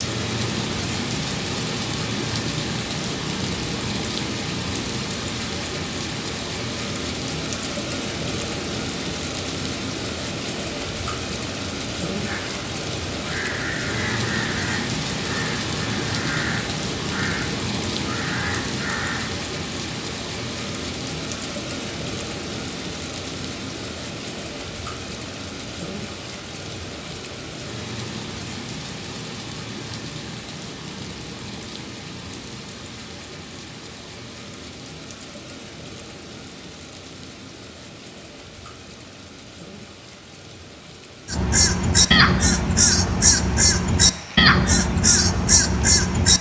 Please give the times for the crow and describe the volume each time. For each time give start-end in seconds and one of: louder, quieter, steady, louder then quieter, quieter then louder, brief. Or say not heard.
12.2-19.4 steady
41.2-46.3 steady.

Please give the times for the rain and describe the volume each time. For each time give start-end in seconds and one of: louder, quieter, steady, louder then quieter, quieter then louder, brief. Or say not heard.
0.0-46.3 quieter.